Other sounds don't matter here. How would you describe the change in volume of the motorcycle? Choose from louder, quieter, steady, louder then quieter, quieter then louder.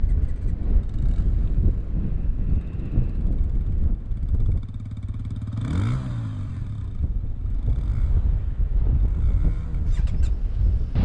louder then quieter.